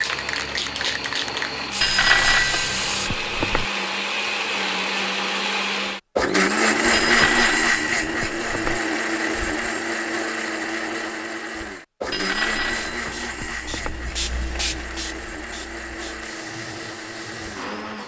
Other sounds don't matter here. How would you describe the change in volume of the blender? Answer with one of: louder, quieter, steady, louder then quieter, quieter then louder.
louder then quieter.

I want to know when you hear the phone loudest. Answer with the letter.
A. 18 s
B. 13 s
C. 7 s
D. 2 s
D.